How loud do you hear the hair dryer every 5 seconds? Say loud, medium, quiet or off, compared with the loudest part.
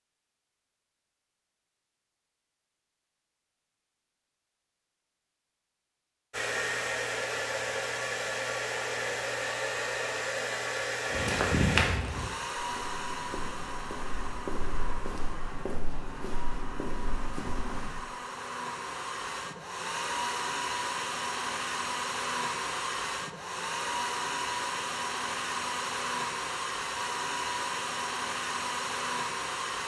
off, loud, loud, medium, loud, loud.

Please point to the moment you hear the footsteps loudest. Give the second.
12 s.